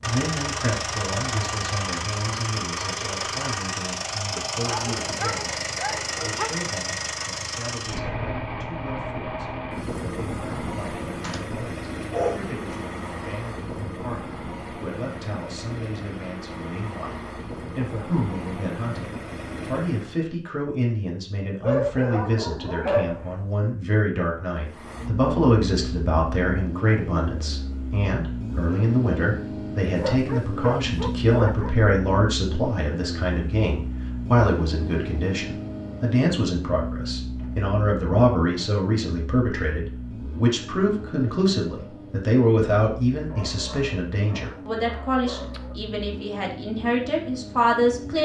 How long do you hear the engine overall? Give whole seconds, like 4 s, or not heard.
44 s.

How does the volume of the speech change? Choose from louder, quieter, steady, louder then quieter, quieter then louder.
louder.